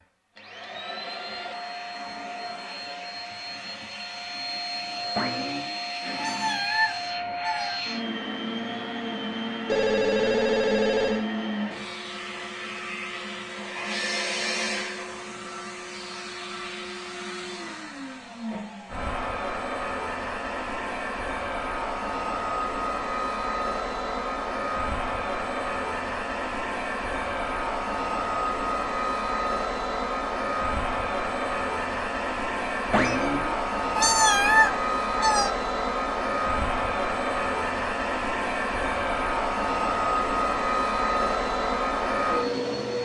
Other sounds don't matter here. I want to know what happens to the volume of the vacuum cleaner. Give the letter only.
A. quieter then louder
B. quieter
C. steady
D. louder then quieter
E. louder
E.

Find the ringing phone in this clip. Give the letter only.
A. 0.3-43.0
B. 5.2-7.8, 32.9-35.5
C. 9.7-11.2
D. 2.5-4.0
C.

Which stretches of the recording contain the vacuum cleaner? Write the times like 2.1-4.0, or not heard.
0.3-43.0.